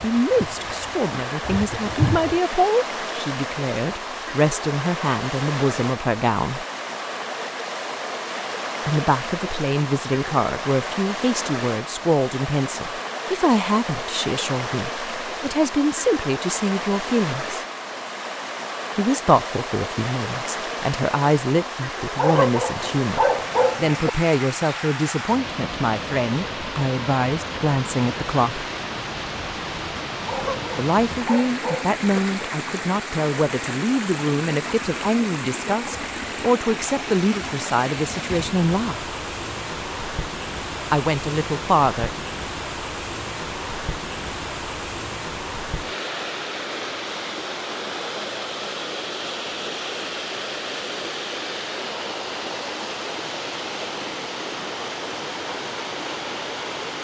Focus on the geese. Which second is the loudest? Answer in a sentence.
The loudest moment of the geese is at 2 seconds.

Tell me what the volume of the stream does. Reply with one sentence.
The volume of the stream stays about the same.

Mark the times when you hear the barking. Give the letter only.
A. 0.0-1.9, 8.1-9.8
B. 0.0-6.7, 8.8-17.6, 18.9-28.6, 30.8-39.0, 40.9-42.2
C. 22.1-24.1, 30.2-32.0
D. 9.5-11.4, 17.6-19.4
C.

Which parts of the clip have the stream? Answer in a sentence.
You can hear the stream from 0.0 to 56.9 s.